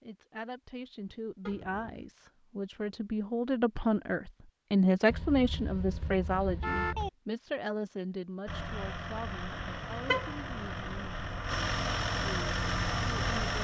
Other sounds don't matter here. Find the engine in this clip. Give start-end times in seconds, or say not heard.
8.4-13.6.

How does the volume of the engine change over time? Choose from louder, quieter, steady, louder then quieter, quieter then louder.
louder.